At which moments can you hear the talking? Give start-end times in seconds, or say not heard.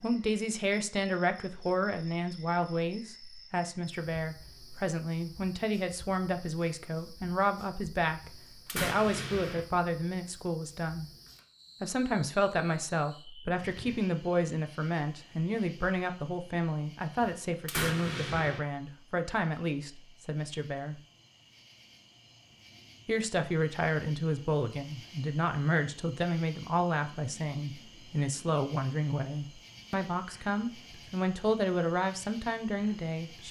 0.0-11.1, 11.8-20.9, 23.1-33.4.